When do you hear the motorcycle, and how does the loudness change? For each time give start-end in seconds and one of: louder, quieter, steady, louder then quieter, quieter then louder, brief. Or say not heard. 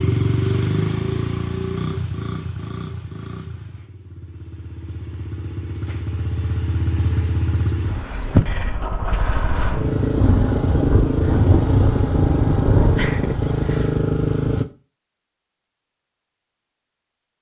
0.0-14.7 quieter then louder.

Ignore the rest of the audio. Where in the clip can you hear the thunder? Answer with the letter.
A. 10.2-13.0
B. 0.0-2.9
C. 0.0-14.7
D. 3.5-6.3
A.